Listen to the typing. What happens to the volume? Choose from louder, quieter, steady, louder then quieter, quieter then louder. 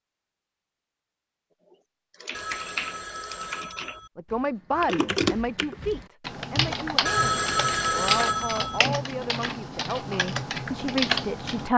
louder.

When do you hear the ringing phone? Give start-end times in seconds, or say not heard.
2.3-4.1, 7.0-8.8.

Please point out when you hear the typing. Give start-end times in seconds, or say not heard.
1.7-11.7.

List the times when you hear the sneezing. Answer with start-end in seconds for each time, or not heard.
not heard.